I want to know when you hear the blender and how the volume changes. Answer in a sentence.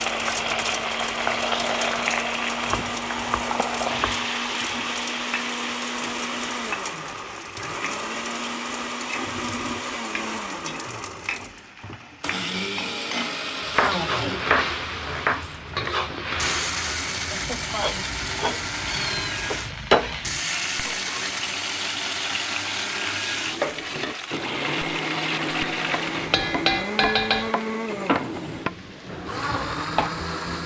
The blender can be heard from 0.0 to 30.6 s, at a steady volume.